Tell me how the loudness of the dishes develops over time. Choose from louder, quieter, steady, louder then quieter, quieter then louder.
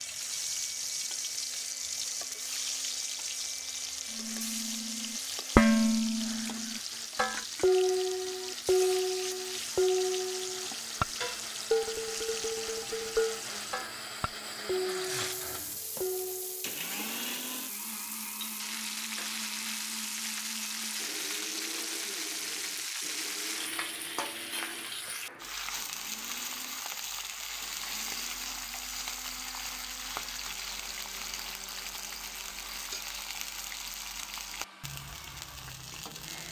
quieter.